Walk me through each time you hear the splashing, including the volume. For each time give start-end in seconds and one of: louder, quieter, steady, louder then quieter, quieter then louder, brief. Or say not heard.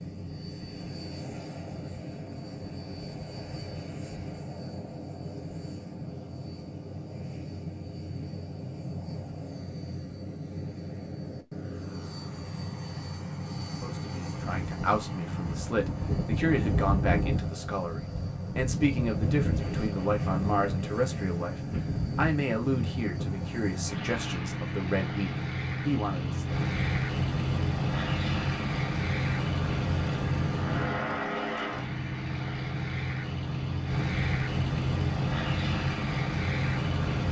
not heard.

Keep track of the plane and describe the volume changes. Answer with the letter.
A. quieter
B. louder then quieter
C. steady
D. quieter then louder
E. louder
E.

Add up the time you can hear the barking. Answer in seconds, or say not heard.
not heard.